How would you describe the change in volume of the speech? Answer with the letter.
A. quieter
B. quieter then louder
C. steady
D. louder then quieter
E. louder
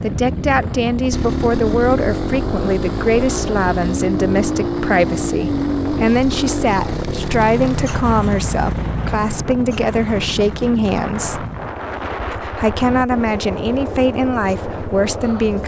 C.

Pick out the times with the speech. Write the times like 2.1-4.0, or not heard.
0.0-11.4, 12.3-15.6.